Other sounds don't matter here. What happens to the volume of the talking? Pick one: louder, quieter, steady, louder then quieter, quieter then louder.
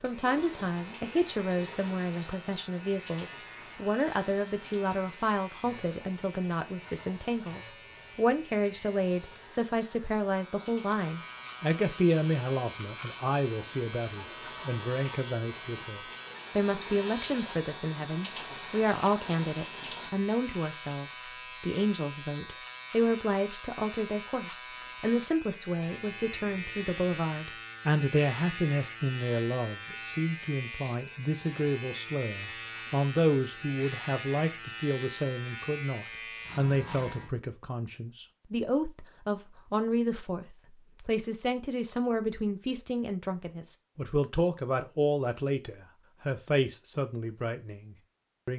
steady.